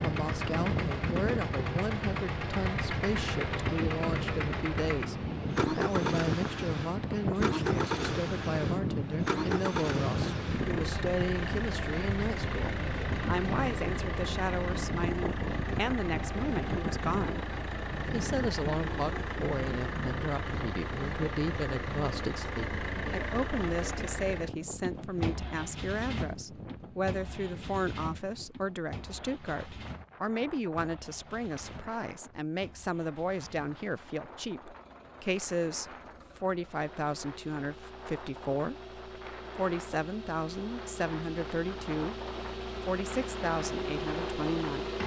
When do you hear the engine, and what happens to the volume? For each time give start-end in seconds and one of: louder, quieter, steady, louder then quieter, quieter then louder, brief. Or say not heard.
0.0-45.0 quieter then louder.